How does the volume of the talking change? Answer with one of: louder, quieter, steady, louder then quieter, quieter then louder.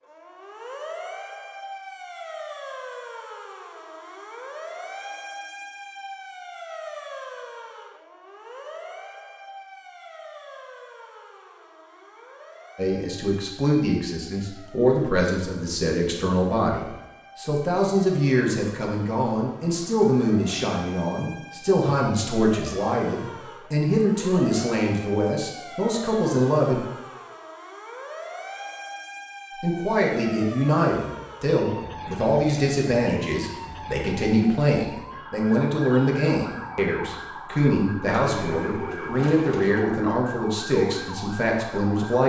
steady.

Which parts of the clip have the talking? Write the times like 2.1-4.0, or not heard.
12.8-26.8, 29.6-42.2.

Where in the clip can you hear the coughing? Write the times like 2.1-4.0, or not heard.
not heard.